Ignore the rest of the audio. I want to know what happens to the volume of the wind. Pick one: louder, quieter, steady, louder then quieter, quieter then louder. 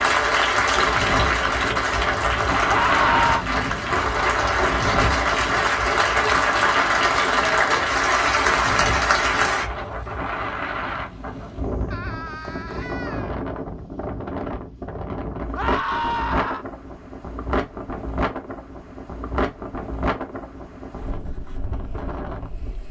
quieter.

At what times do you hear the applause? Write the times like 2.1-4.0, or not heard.
0.0-9.7.